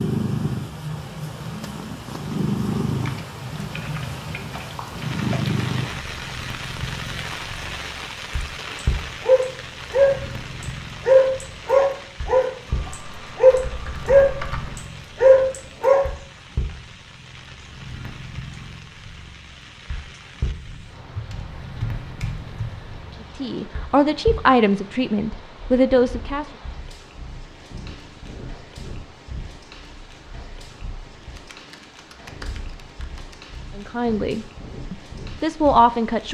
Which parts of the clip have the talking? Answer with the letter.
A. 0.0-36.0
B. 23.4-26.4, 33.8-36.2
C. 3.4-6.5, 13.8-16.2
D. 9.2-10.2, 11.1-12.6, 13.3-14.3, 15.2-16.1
B.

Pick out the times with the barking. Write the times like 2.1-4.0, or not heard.
9.2-10.2, 11.1-12.6, 13.3-14.3, 15.2-16.1.